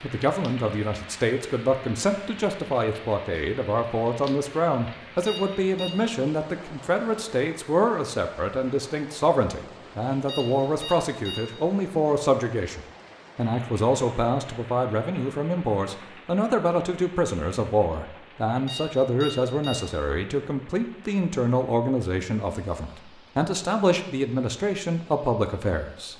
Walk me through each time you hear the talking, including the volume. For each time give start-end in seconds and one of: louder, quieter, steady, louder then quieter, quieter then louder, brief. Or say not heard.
0.0-26.1 steady.